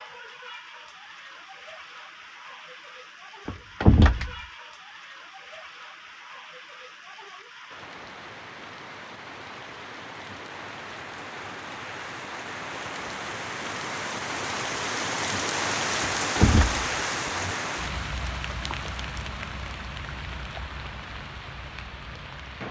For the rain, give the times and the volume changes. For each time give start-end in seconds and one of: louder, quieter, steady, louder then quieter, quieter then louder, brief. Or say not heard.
0.0-22.6 louder then quieter.